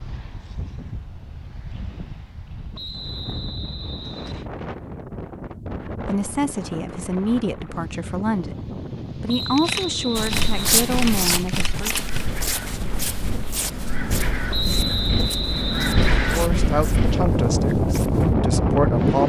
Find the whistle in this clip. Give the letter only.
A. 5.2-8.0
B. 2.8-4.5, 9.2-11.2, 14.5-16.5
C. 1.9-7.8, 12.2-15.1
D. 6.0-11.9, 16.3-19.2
B.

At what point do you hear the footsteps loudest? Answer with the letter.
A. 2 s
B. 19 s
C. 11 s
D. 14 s
C.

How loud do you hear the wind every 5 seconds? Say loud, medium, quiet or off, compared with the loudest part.
quiet, quiet, medium, loud.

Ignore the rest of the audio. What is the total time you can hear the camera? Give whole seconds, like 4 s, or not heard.
3 s.